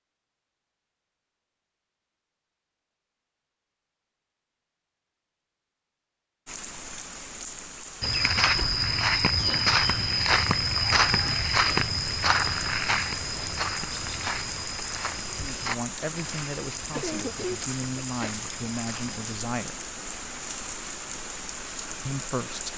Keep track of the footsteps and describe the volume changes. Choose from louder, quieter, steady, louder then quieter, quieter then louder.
quieter.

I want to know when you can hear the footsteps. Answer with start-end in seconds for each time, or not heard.
8.0-19.2.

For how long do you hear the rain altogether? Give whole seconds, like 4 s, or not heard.
16 s.